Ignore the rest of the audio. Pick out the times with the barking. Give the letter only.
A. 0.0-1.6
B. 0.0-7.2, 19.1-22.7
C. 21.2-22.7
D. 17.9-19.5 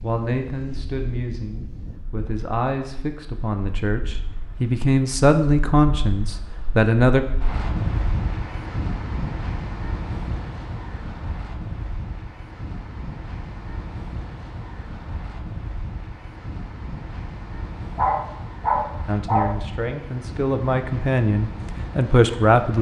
D.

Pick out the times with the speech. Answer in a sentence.
You can hear the speech from 0.0 to 7.2 s and from 19.1 to 22.7 s.